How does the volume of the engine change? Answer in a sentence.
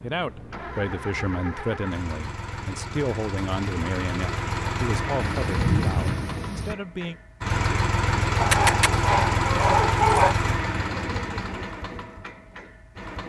The loudness of the engine goes up, then down.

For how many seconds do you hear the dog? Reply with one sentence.
The dog can be heard for 2 seconds in total.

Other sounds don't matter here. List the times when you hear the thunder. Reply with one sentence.
The thunder can be heard from 5.2 to 6.8 s.